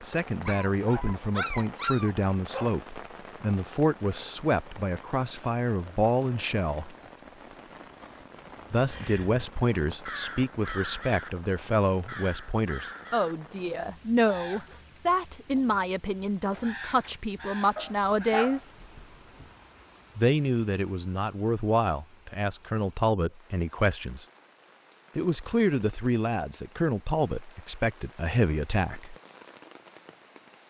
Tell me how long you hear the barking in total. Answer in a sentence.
The barking can be heard for 4 seconds in total.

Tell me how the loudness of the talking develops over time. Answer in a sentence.
The loudness of the talking stays about the same.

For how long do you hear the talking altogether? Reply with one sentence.
The talking can be heard for 25 seconds in total.